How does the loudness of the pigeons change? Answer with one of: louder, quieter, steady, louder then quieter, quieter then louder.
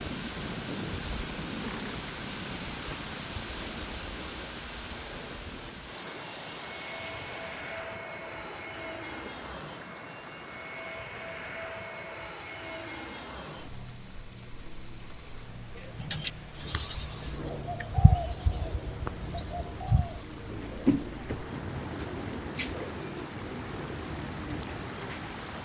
quieter.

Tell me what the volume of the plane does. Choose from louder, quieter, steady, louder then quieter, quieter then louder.
steady.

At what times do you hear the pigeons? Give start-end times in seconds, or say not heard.
15.8-25.4.